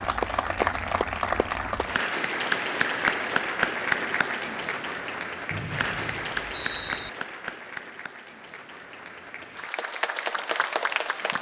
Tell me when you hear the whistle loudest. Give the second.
7 s.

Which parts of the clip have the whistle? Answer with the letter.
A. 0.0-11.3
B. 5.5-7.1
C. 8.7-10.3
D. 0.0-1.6
B.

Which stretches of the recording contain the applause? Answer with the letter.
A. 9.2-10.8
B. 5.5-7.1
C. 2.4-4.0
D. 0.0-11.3
D.